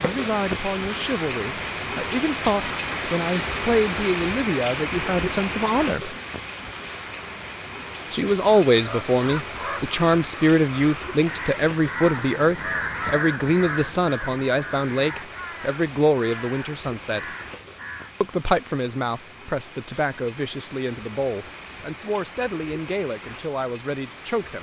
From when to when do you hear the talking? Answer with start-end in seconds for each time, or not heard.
0.0-6.2, 8.1-17.2, 18.2-24.5.